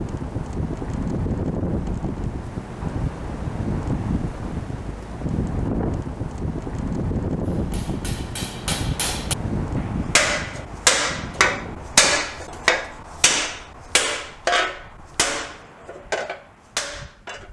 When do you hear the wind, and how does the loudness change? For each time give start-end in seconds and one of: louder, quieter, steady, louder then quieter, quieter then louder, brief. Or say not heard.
0.0-17.4 quieter.